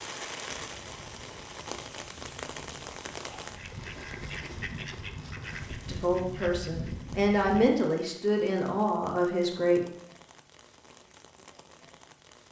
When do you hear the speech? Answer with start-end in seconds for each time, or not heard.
5.8-9.8.